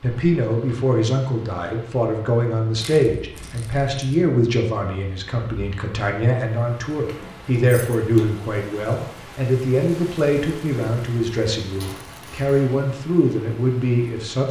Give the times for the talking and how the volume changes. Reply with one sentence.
The talking can be heard from 0.0 to 14.4 s, at a steady volume.